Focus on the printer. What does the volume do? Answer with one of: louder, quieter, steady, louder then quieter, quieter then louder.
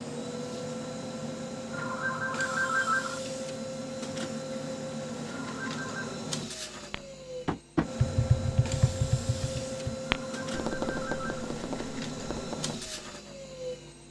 steady.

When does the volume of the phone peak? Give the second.
3 s.